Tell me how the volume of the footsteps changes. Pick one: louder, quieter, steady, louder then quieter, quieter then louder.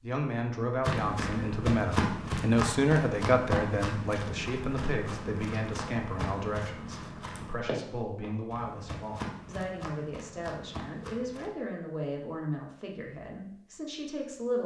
quieter.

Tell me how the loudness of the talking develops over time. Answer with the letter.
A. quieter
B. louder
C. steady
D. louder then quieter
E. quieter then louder
A.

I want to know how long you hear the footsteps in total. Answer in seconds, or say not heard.
11 s.